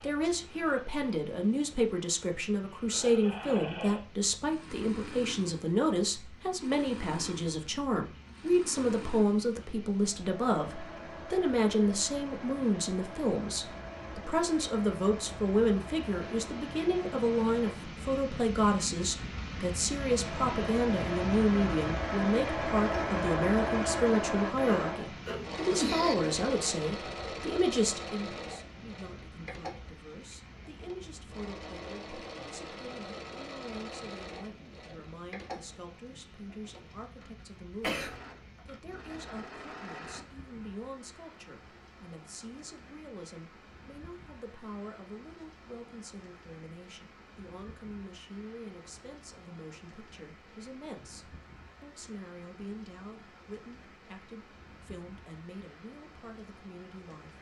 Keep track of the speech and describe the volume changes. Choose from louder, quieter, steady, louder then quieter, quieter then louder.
quieter.